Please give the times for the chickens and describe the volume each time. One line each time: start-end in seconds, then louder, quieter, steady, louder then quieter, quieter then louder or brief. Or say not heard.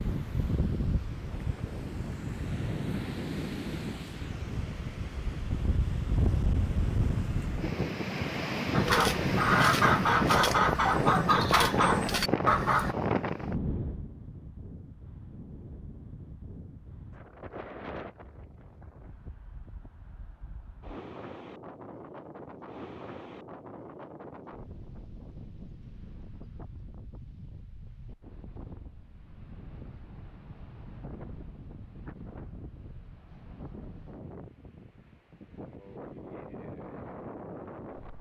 8.7-12.9 steady.